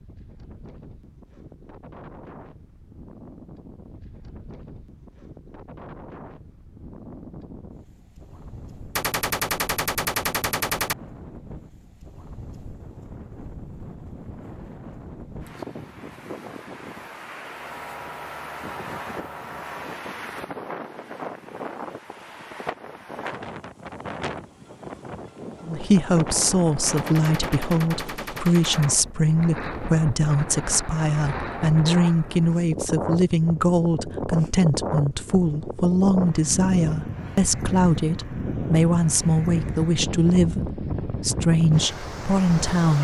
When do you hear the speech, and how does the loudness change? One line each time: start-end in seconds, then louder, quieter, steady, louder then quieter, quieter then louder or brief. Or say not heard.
25.6-42.9 steady.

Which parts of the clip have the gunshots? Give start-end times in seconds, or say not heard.
8.9-10.9, 26.9-28.9.